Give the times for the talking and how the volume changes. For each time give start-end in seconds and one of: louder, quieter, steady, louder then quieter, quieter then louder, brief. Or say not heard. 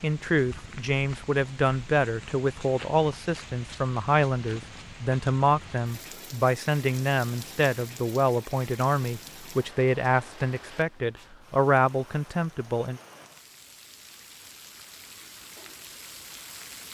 0.0-13.0 steady.